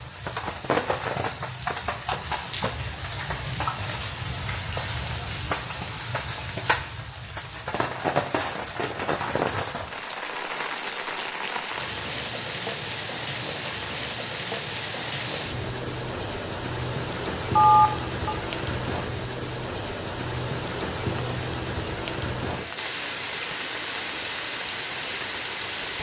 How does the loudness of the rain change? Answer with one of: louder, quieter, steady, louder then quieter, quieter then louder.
steady.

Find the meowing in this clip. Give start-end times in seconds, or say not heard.
not heard.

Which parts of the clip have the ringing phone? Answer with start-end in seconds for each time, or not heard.
17.6-18.4.